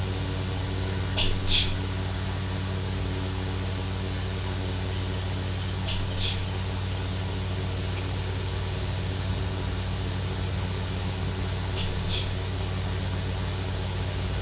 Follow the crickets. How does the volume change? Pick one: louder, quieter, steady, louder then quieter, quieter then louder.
louder then quieter.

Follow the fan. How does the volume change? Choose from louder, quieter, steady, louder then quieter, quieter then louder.
steady.